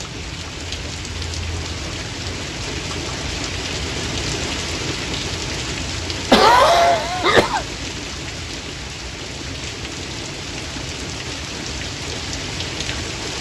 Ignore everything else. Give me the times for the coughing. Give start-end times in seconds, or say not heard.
6.3-7.7.